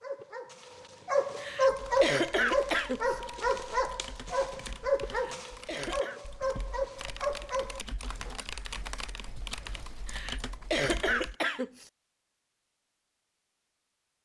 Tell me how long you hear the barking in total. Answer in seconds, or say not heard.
8 s.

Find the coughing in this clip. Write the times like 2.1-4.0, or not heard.
1.4-3.2, 5.0-6.2, 10.1-11.9.